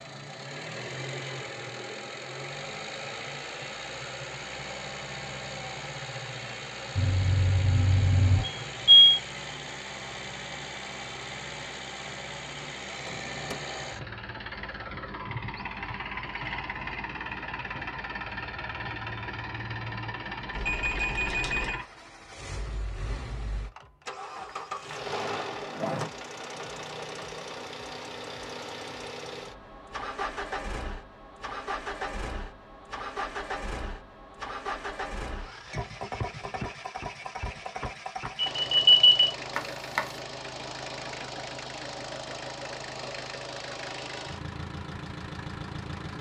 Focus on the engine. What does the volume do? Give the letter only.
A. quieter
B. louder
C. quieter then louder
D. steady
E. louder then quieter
D.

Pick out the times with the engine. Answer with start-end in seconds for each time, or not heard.
0.0-46.1.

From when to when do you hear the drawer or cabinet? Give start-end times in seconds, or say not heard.
12.8-13.6, 24.4-26.1, 39.5-40.2.